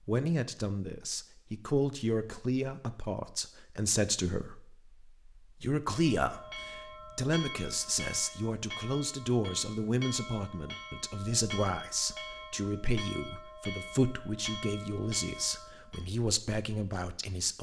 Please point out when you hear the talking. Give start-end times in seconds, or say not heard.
0.1-17.5.